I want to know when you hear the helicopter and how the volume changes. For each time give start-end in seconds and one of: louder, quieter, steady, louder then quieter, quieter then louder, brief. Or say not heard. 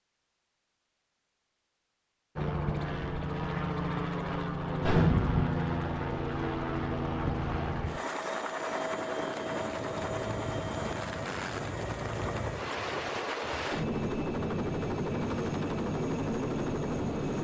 2.4-17.3 steady.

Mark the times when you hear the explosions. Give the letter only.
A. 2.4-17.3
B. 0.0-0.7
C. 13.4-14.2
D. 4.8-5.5
D.